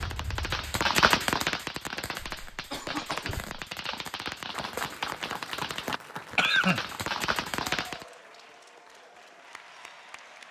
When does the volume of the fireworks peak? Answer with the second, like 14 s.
1 s.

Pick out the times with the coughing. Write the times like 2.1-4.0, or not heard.
2.3-3.6, 6.3-6.9.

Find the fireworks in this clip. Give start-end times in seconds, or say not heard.
0.0-8.1.